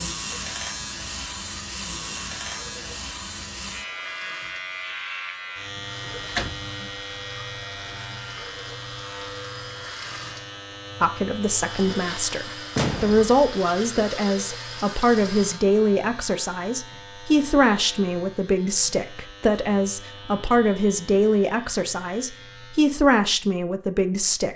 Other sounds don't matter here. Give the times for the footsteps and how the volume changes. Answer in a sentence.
The footsteps can't be heard in this clip.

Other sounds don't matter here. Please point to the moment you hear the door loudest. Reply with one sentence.
The loudest moment of the door is at 13 seconds.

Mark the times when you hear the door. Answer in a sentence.
You can hear the door from 6.0 to 6.7 s and from 12.8 to 13.3 s.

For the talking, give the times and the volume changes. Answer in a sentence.
You can hear the talking from 11.0 to 24.5 s, at a steady volume.